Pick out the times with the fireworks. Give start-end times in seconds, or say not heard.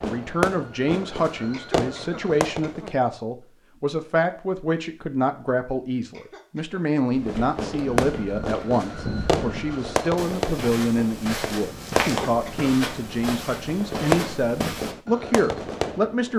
0.0-3.0, 7.2-16.3.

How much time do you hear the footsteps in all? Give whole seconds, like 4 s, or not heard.
8 s.